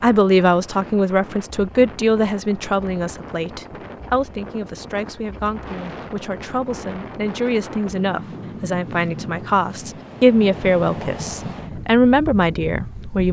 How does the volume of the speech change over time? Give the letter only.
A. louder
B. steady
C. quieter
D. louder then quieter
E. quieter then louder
E.